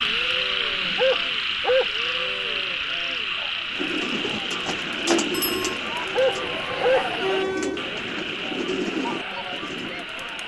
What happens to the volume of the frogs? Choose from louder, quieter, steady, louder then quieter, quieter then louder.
quieter.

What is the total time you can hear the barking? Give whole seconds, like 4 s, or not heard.
2 s.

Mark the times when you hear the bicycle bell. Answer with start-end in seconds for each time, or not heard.
5.3-5.8.